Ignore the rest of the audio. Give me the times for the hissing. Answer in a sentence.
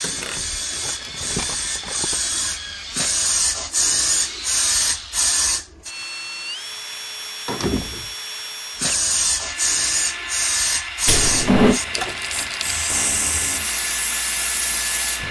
You can hear the hissing from 0.0 to 5.9 s and from 8.8 to 15.2 s.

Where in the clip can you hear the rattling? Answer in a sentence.
You can hear the rattling from 0.7 to 2.3 s and from 11.9 to 12.8 s.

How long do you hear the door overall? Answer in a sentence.
You can hear the door for 2 seconds altogether.